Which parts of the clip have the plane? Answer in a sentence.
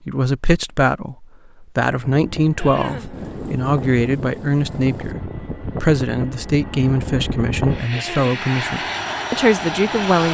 The plane can be heard from 2.0 to 10.3 s.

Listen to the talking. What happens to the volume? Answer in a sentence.
The volume of the talking stays about the same.